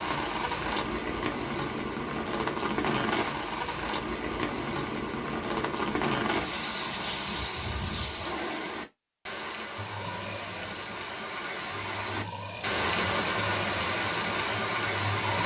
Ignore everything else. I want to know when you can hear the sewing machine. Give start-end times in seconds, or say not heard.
9.8-15.4.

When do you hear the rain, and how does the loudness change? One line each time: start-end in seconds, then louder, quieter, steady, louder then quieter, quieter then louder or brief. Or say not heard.
0.0-15.4 quieter then louder.